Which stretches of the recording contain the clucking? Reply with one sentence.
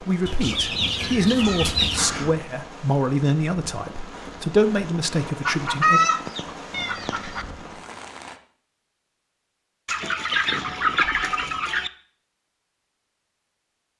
You can hear the clucking from 0.2 to 2.0 s, from 5.5 to 7.5 s and from 9.8 to 11.9 s.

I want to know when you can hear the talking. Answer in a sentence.
The talking can be heard from 0.0 to 6.0 s.